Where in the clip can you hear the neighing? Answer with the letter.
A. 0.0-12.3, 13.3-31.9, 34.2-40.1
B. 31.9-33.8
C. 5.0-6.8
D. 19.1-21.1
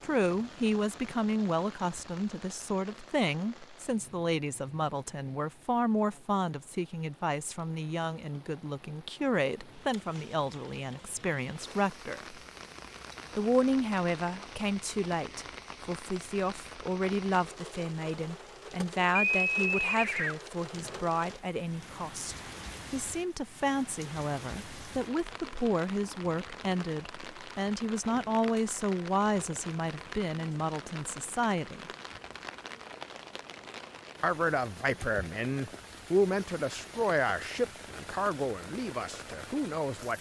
D.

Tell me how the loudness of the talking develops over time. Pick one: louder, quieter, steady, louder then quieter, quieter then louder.
steady.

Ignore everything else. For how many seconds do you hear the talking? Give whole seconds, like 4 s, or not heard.
37 s.